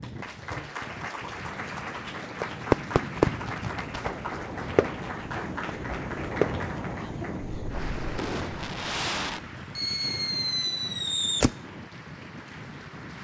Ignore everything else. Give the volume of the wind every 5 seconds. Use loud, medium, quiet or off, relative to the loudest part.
medium, loud, medium.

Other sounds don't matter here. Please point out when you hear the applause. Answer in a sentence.
You can hear the applause from 0.0 to 13.2 s.